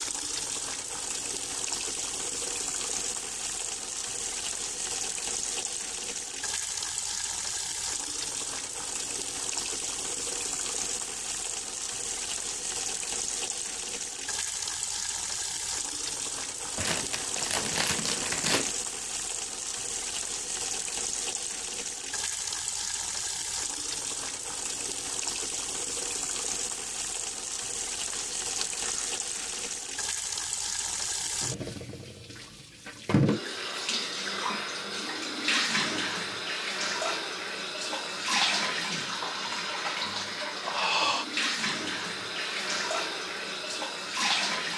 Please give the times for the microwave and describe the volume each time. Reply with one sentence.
The microwave can't be heard in this clip.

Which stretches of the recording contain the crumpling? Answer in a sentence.
You can hear the crumpling from 16.8 to 18.7 s and from 28.1 to 29.6 s.